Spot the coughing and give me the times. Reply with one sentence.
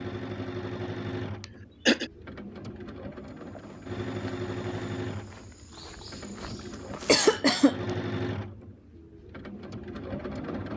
You can hear the coughing from 1.4 to 2.1 s and from 7.0 to 7.8 s.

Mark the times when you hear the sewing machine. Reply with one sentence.
You can hear the sewing machine from 0.0 to 10.7 s.